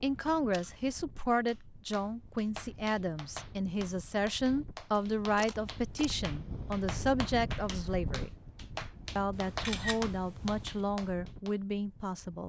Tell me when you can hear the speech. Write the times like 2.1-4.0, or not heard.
0.0-8.3, 9.2-12.4.